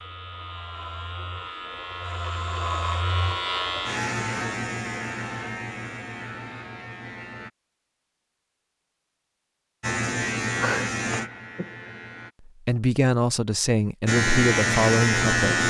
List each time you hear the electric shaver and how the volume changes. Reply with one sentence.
You can hear the electric shaver from 0.0 to 7.5 s, getting louder then quieter; briefly from 9.8 to 12.3 s; and briefly from 14.1 to 15.6 s.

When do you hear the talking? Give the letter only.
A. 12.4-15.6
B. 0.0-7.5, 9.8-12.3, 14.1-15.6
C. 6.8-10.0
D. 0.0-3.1
A.